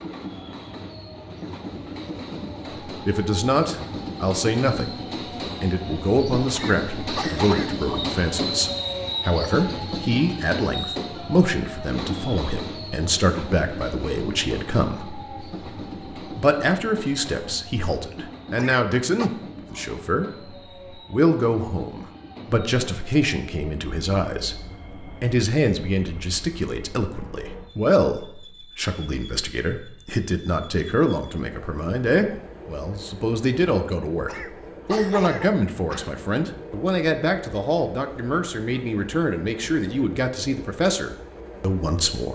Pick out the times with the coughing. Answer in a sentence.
You can hear the coughing from 6.5 to 7.8 s, from 18.6 to 19.3 s and from 34.2 to 36.1 s.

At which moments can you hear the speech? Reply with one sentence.
The speech can be heard from 2.9 to 5.0 s, from 5.6 to 15.3 s, from 16.4 to 20.3 s and from 20.9 to 42.3 s.